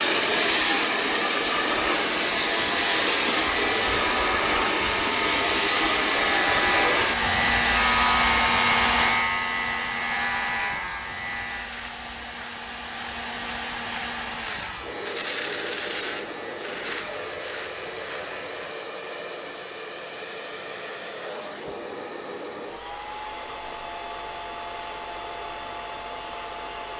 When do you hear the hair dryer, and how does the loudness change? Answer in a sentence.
The hair dryer can be heard from 0.0 to 26.9 s, getting quieter.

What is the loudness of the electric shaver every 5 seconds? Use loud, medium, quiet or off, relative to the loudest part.
medium, loud, medium, medium, off, off.